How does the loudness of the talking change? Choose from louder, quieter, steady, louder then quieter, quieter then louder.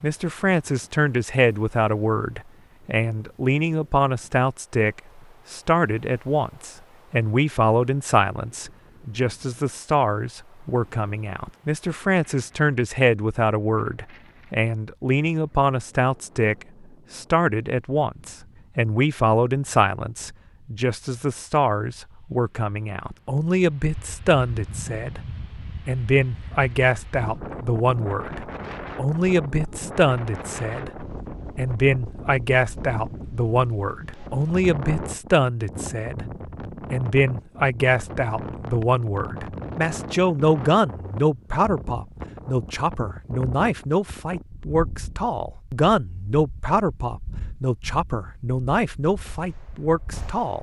steady.